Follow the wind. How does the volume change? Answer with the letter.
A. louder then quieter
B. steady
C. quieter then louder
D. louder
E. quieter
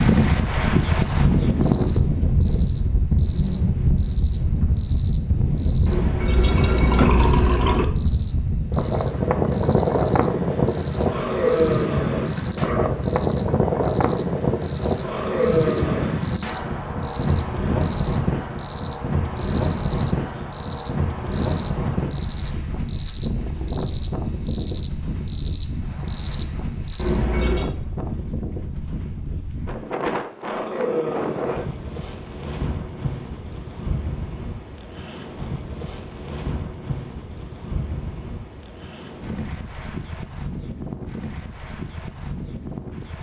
E.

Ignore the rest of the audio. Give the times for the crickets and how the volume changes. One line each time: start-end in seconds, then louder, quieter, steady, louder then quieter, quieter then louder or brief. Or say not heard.
0.2-27.2 louder.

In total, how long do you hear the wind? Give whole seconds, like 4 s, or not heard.
43 s.